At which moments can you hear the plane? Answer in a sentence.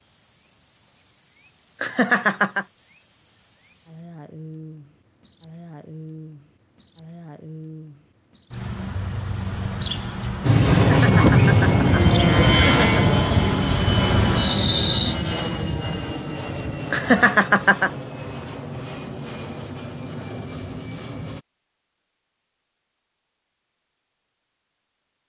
You can hear the plane from 10.4 to 21.4 s.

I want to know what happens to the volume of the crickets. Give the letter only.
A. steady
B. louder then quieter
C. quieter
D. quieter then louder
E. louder
E.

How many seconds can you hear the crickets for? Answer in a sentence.
The crickets can be heard for 15 seconds in total.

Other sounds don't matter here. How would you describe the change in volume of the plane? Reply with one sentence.
The loudness of the plane goes down.